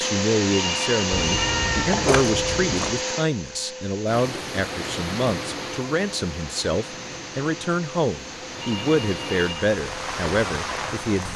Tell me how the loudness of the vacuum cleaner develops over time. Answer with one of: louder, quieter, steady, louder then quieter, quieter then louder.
quieter.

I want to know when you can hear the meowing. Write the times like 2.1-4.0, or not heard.
1.1-3.0.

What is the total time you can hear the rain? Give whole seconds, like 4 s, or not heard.
7 s.